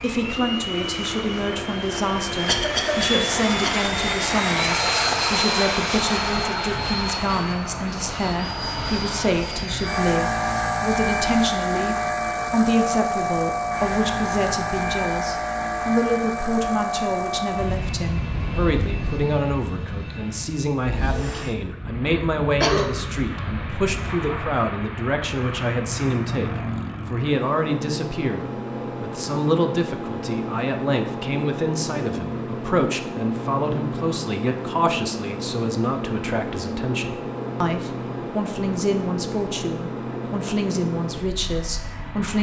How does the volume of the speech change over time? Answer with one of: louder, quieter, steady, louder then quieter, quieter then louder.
steady.